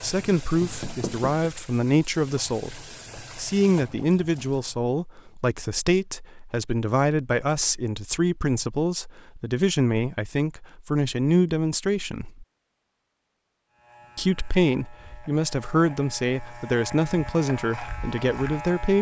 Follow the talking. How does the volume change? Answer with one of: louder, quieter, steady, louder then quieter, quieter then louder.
steady.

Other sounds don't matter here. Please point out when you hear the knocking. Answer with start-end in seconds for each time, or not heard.
0.6-1.5.